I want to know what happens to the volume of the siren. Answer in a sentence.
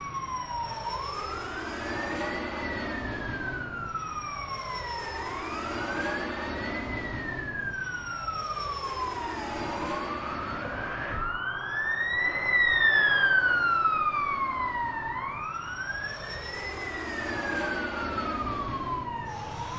The volume of the siren goes up, then down.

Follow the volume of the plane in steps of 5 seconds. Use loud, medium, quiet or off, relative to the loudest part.
loud, loud, medium, loud.